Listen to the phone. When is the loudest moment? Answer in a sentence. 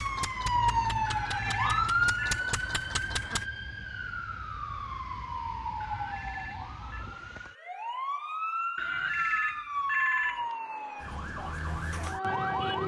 The volume of the phone peaks at 10 seconds.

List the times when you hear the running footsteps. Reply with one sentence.
You can't hear the running footsteps here.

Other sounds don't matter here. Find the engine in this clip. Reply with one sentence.
The engine can be heard from 0.0 to 3.5 s.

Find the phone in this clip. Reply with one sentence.
You can hear the phone from 1.1 to 2.4 s, from 5.8 to 7.0 s and from 8.8 to 10.4 s.